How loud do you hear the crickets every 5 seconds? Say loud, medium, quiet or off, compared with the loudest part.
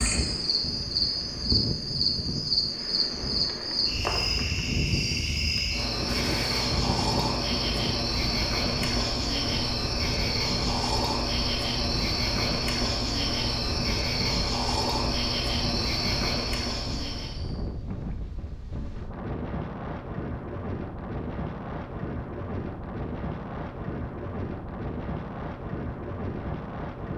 loud, loud, loud, loud, off, off.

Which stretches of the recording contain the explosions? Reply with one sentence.
You can hear the explosions from 6.0 to 6.8 s.